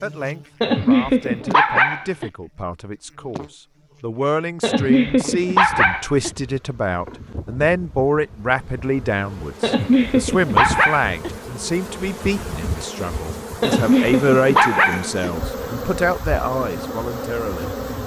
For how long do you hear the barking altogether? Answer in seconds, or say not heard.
7 s.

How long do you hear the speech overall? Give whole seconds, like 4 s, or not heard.
18 s.